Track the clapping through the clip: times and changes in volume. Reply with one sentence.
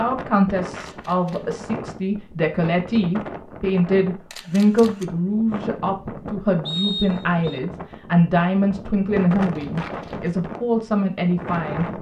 You can't hear the clapping here.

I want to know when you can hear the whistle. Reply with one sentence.
You can hear the whistle from 6.7 to 7.6 s.